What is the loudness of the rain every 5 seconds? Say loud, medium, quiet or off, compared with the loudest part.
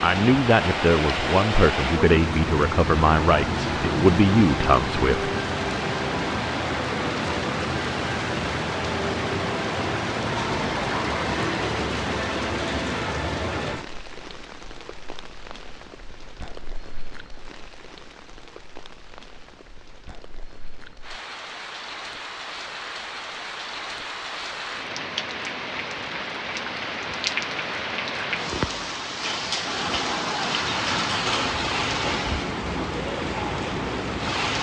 loud, loud, loud, quiet, medium, loud, loud.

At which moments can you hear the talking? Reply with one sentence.
You can hear the talking from 0.0 to 5.3 s.